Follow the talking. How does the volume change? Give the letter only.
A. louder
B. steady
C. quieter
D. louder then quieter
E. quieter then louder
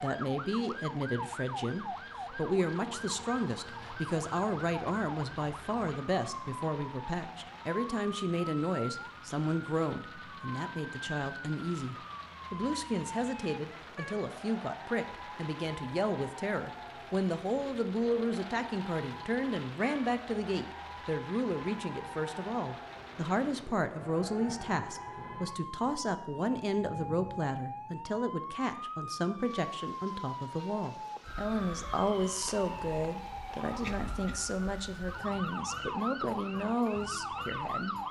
B.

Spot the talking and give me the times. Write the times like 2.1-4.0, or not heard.
0.0-38.0.